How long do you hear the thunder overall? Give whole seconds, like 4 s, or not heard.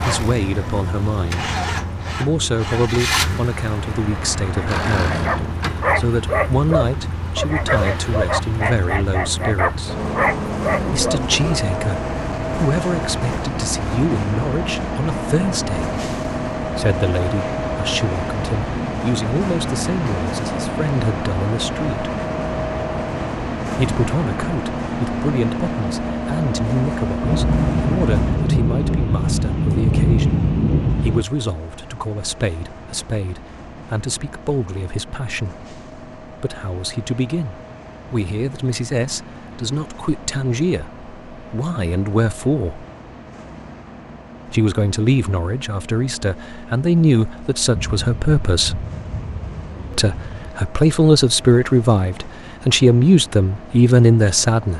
9 s.